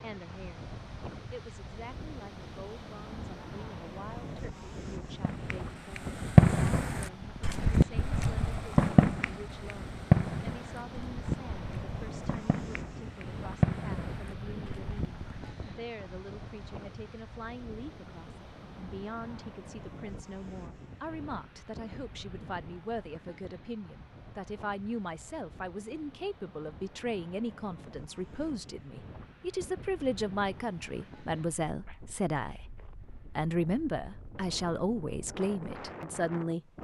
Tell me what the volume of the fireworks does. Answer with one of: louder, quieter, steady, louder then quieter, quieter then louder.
quieter then louder.